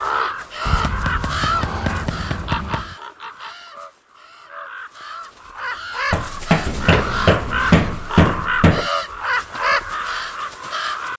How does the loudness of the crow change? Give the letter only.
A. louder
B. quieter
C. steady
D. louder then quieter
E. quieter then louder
E.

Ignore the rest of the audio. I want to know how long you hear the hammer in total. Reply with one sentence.
The hammer can be heard for 5 seconds in total.